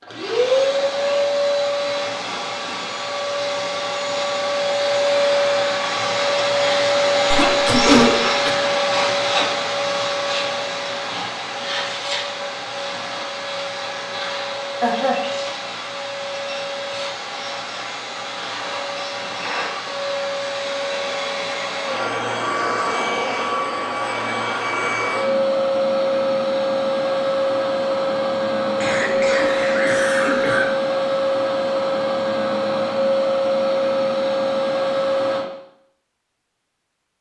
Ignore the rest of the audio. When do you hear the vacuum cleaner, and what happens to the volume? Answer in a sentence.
The vacuum cleaner can be heard from 0.0 to 35.5 s, getting quieter then louder.